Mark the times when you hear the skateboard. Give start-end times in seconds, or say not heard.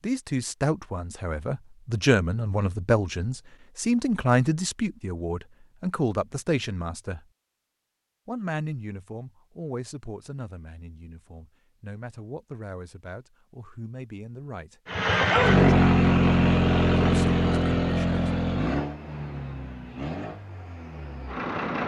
not heard.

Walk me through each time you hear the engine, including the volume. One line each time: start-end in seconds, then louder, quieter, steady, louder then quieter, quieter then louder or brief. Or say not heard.
14.8-21.8 quieter.